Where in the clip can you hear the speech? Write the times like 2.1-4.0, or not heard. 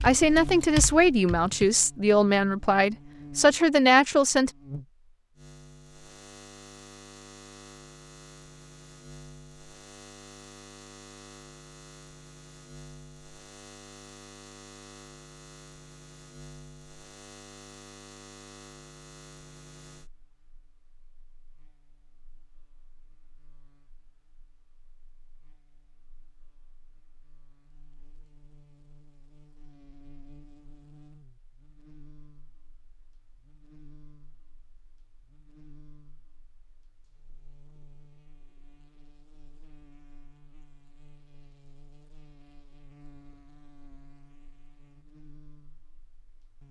0.0-4.5.